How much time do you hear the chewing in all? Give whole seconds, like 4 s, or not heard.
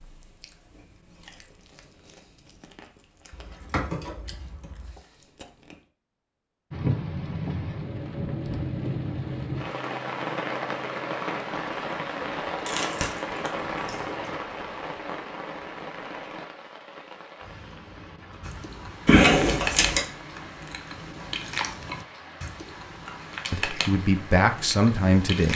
13 s.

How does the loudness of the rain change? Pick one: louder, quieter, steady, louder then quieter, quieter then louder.
quieter.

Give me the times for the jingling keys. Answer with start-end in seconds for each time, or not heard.
3.3-5.0, 12.7-14.3, 19.1-20.0.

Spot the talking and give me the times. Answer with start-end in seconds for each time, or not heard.
23.5-25.5.